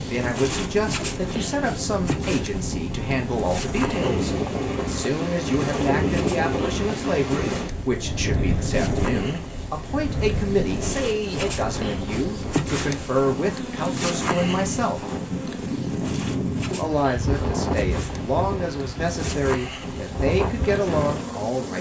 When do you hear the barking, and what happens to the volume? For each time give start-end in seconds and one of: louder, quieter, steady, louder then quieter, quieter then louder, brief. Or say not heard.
not heard.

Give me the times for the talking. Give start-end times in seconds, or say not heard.
0.0-15.2, 16.7-21.7.